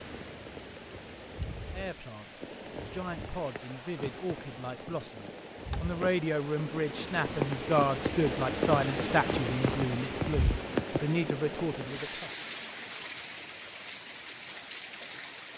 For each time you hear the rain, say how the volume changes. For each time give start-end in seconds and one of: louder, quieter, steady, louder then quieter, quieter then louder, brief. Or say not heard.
0.0-15.5 louder then quieter.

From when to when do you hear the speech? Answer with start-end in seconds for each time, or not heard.
1.7-12.4.